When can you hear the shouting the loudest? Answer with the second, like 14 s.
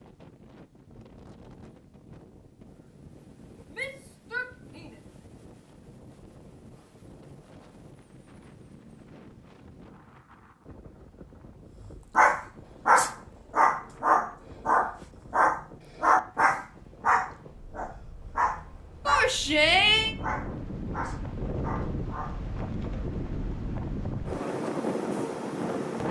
20 s.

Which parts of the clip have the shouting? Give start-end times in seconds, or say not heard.
3.7-5.0, 19.1-20.1.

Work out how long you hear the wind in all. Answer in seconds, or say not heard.
26 s.